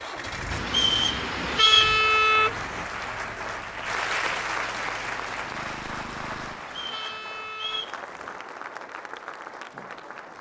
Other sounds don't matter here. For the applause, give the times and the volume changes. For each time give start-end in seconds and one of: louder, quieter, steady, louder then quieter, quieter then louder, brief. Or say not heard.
0.0-10.3 louder then quieter.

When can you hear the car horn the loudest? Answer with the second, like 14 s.
2 s.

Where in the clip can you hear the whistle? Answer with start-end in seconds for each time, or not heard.
0.7-1.9, 6.7-8.0.